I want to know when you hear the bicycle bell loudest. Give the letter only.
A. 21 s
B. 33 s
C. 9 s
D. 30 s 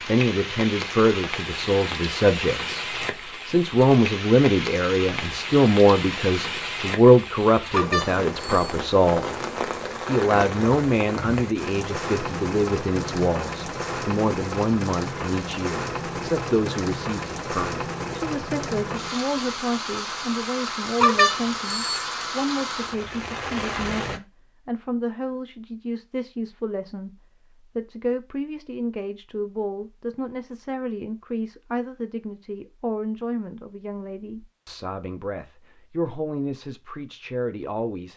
A.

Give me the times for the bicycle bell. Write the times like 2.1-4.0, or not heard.
7.7-8.8, 21.0-22.1.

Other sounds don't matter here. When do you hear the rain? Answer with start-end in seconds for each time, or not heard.
0.0-24.2.